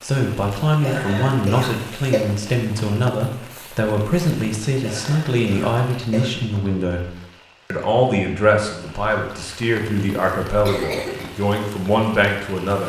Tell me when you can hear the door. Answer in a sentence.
You can't hear the door here.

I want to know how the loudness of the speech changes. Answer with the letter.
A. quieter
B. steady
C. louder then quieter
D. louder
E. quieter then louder
B.